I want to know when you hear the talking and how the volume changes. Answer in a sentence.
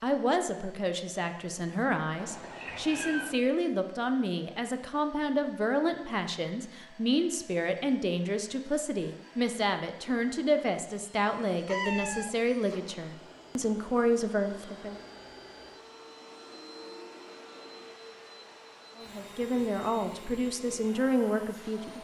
You can hear the talking from 0.0 to 14.9 s, at a steady volume; and briefly from 18.9 to 21.9 s.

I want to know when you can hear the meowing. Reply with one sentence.
The meowing can be heard from 2.1 to 3.4 s and from 11.7 to 12.3 s.